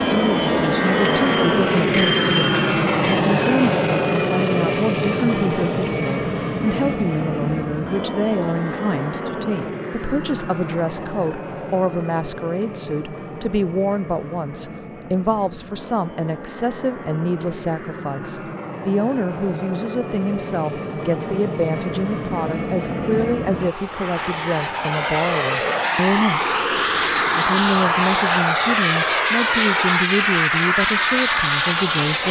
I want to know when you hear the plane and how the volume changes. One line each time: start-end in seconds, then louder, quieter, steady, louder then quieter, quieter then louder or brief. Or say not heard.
0.0-32.2 quieter then louder.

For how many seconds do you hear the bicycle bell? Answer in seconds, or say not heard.
2 s.